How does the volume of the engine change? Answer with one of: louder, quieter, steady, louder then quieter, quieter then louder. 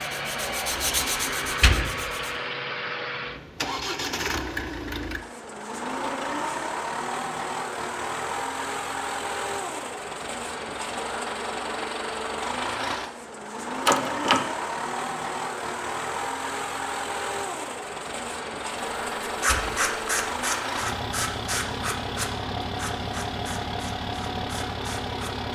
steady.